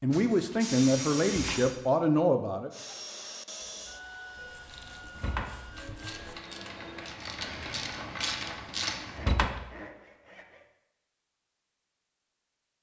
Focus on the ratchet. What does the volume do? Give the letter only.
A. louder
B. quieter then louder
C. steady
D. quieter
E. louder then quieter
A.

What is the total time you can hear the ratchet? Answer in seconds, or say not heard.
6 s.